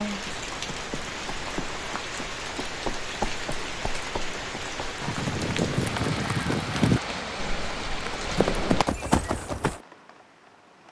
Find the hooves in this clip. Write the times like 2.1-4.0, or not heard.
0.2-9.8.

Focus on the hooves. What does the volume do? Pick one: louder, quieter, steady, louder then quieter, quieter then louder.
louder.